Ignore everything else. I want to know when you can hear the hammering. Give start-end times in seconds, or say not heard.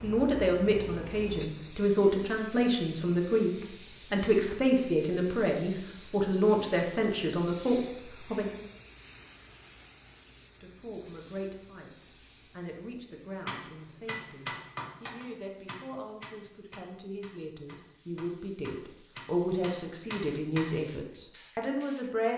13.4-20.8.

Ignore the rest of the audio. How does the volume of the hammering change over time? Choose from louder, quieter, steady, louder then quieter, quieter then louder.
quieter then louder.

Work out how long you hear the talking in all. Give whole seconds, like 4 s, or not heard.
20 s.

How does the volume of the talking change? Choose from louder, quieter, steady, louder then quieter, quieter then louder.
quieter then louder.